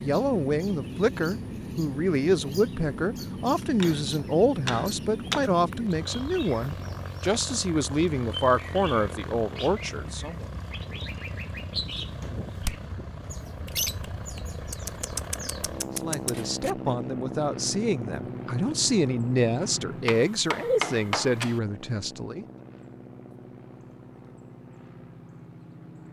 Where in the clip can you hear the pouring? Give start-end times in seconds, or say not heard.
not heard.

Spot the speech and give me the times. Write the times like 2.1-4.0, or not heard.
0.0-10.4, 16.0-22.4.